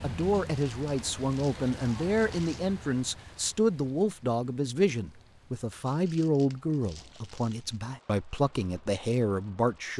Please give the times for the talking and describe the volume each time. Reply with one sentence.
You can hear the talking from 0.0 to 9.9 s, at a steady volume.